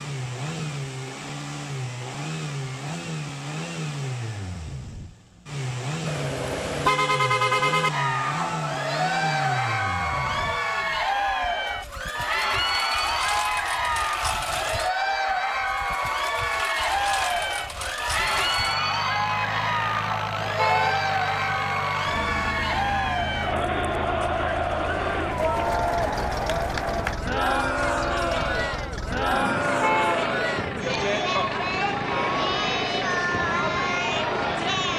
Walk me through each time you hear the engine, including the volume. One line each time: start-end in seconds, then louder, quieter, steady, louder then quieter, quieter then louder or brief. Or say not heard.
0.0-34.9 steady.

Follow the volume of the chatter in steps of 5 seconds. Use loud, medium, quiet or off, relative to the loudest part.
off, loud, loud, loud, loud, loud, loud.